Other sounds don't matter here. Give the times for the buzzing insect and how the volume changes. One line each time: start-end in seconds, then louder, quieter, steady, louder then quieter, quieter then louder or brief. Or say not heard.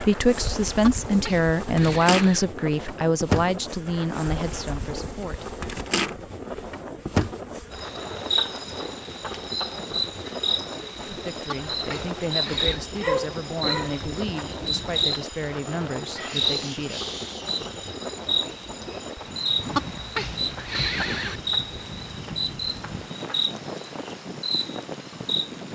0.0-25.6 steady.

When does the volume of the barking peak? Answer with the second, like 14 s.
13 s.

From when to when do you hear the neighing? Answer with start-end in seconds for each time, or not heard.
0.8-2.5, 11.4-12.8, 19.7-21.4.